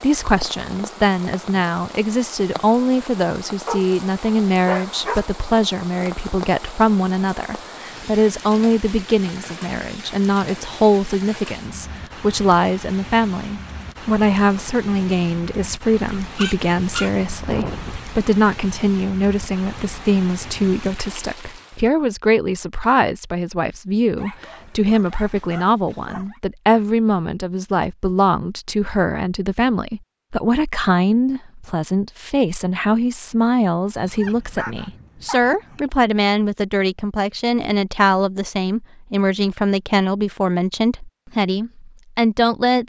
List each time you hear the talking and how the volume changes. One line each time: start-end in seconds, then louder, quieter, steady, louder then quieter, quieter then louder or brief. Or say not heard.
0.0-42.8 steady.